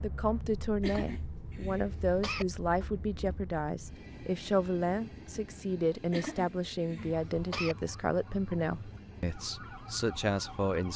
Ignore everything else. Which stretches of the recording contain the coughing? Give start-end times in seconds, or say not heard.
0.8-2.5, 6.1-7.8.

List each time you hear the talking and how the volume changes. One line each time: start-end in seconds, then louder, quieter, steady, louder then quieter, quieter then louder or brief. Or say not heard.
0.0-10.9 steady.